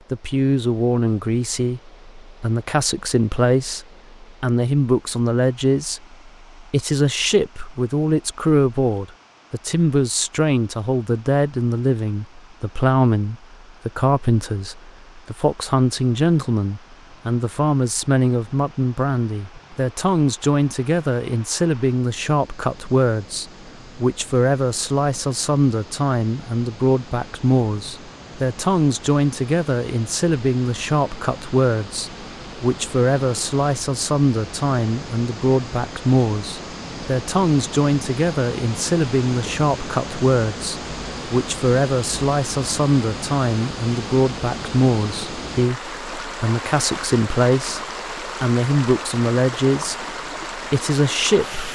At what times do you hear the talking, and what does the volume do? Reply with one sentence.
You can hear the talking from 0.1 to 51.7 s, at a steady volume.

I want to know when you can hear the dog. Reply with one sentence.
You can't hear the dog here.